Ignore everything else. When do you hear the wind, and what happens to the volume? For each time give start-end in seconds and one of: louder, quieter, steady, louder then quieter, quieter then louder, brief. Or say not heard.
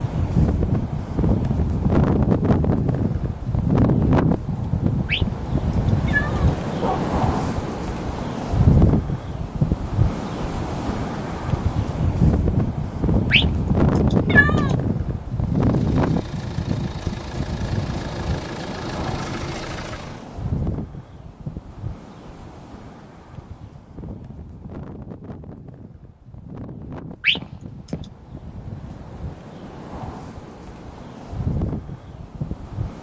0.0-32.9 quieter.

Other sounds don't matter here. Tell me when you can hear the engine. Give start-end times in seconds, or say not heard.
15.3-20.2.